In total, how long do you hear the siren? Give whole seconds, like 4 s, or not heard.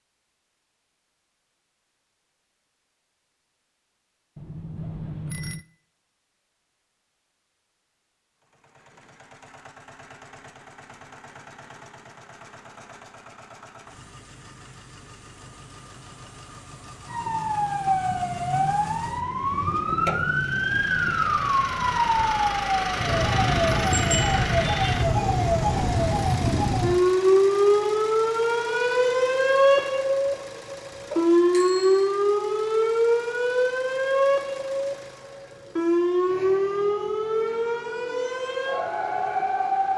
23 s.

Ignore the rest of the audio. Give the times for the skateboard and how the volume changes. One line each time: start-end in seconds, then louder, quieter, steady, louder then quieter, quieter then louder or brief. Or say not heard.
not heard.